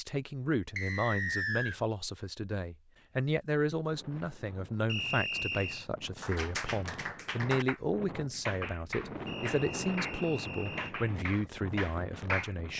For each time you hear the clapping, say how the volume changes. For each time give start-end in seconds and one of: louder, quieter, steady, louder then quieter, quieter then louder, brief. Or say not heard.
6.2-12.6 steady.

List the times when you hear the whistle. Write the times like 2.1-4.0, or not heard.
0.8-1.8, 4.8-5.8, 9.2-10.9.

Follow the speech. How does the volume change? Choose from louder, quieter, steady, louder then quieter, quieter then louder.
steady.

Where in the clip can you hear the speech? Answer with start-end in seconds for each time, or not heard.
0.0-12.7.